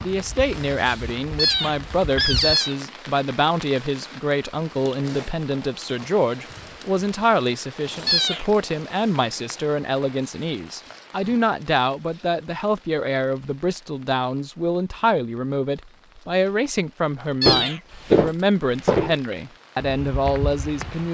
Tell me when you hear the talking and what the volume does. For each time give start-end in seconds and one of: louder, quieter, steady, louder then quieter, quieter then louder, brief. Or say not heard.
0.0-21.0 steady.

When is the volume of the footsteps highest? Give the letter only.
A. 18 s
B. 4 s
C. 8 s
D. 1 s
A.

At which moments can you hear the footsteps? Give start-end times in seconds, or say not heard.
0.0-2.5, 17.4-21.0.